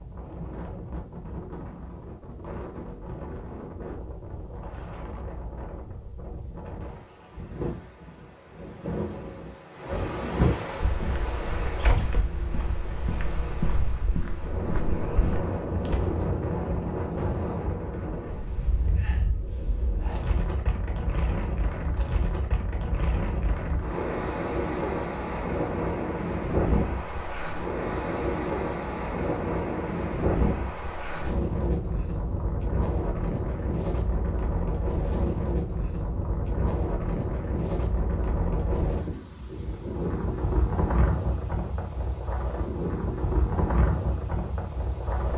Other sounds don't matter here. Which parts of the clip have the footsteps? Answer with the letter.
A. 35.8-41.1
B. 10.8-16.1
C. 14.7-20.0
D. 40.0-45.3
B.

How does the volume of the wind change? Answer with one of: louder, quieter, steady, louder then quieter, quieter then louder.
louder.